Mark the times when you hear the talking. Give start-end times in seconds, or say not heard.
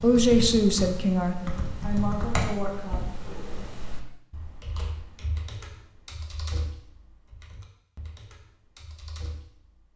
0.0-3.0.